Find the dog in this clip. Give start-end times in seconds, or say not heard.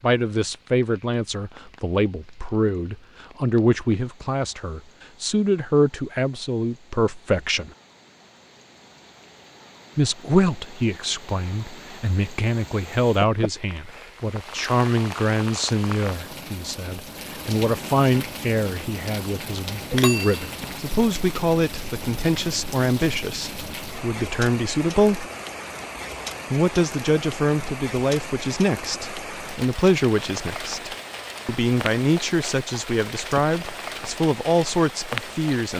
not heard.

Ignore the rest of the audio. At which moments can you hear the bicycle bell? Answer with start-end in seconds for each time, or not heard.
19.9-20.8.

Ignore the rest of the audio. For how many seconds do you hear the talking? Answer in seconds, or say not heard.
32 s.